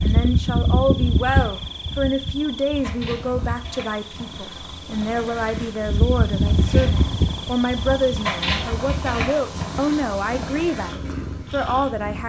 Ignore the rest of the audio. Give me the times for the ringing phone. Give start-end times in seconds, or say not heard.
not heard.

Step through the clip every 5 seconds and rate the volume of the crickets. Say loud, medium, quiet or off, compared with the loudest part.
loud, loud, off.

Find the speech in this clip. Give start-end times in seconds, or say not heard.
0.0-12.2.